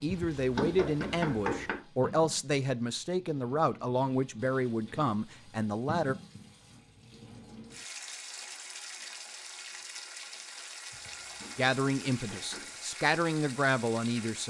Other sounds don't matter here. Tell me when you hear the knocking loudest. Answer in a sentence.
The loudest moment of the knocking is at 1 second.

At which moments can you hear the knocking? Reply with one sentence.
You can hear the knocking from 0.1 to 1.8 s and from 10.9 to 12.8 s.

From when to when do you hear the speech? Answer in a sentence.
You can hear the speech from 0.0 to 6.2 s and from 11.6 to 14.4 s.